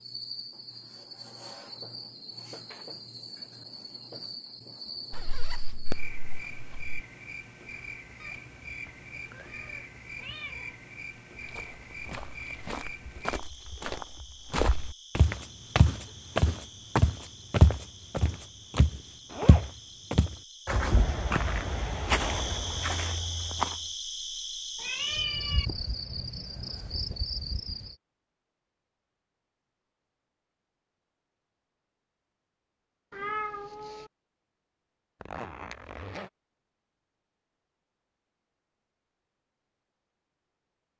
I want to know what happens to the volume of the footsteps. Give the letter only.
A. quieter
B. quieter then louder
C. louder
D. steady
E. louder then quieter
E.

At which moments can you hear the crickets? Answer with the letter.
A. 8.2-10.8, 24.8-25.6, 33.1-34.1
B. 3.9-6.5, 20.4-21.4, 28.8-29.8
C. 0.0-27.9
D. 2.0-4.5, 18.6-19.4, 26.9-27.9
C.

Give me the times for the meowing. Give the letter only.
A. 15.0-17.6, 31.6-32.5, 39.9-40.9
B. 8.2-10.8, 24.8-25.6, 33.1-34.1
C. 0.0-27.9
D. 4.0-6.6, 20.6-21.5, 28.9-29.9
B.